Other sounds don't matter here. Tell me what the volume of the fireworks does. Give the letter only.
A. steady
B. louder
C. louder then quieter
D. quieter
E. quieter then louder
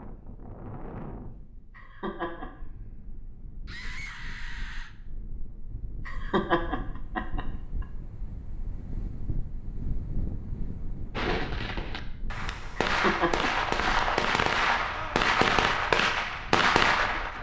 B.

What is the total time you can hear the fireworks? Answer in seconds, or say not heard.
6 s.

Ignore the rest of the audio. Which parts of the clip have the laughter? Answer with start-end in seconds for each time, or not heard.
1.8-2.5, 6.0-7.5, 12.8-13.9.